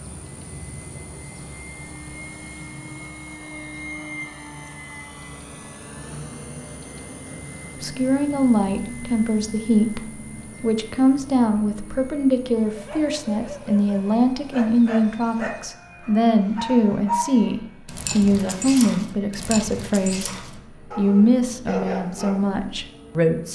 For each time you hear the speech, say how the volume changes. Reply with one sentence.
You can hear the speech from 7.8 to 23.5 s, at a steady volume.